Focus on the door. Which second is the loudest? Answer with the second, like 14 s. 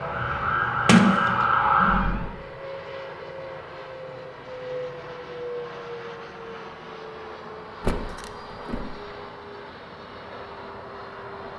1 s.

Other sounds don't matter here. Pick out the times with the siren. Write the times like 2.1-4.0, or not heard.
0.0-2.3.